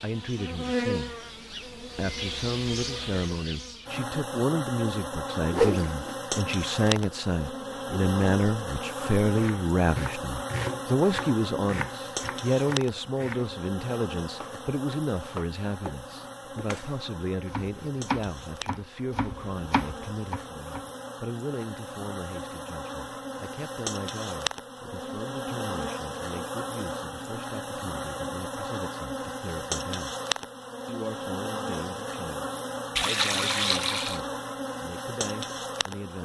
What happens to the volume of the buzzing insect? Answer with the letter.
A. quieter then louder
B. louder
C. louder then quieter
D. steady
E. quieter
A.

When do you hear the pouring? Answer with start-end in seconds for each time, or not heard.
33.0-34.2.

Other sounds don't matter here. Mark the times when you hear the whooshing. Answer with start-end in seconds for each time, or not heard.
5.5-6.2.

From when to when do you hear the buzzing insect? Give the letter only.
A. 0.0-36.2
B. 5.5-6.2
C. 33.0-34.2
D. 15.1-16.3
A.